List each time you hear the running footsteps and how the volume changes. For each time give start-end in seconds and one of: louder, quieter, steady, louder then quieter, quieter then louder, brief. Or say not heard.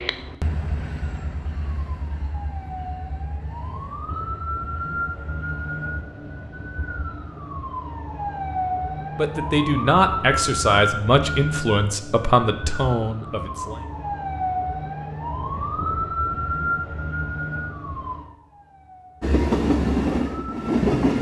not heard.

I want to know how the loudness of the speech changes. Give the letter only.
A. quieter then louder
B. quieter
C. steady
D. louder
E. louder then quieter
B.